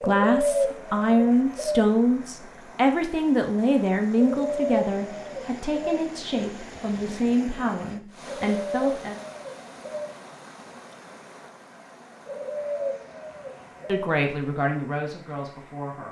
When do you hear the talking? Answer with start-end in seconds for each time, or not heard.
0.0-9.2, 13.8-16.0.